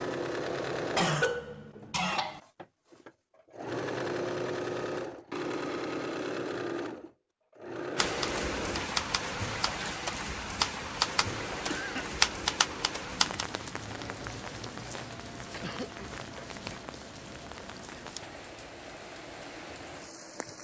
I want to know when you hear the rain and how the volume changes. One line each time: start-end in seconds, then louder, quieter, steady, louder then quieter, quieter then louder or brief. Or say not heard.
8.0-20.5 quieter.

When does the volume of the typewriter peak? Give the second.
12 s.